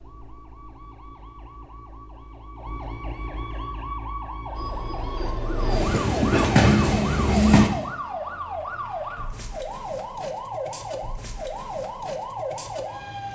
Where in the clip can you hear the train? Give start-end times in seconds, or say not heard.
4.5-7.7.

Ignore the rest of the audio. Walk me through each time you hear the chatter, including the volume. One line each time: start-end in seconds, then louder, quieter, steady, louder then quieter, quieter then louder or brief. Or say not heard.
not heard.